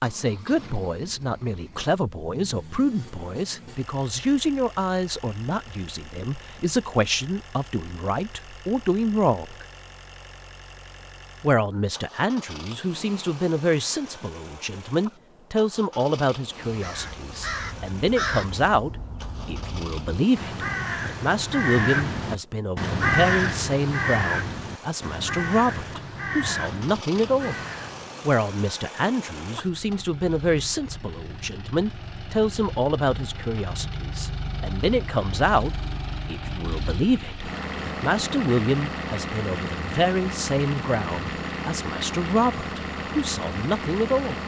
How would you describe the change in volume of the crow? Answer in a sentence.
The volume of the crow goes up, then down.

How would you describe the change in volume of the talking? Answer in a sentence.
The loudness of the talking stays about the same.